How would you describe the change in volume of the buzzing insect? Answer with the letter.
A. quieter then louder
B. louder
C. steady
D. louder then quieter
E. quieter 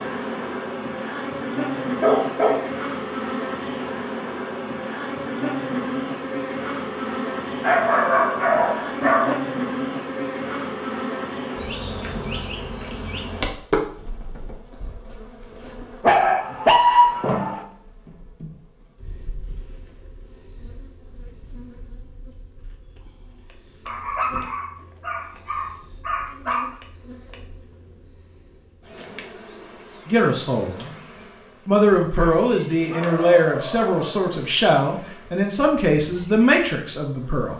E.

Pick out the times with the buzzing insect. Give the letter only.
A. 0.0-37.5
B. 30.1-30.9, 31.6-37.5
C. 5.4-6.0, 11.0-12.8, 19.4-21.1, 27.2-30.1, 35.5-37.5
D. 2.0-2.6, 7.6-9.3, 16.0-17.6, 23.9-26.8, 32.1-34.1
A.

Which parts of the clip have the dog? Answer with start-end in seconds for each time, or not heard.
2.0-2.6, 7.6-9.3, 16.0-17.6, 23.9-26.8, 32.1-34.1.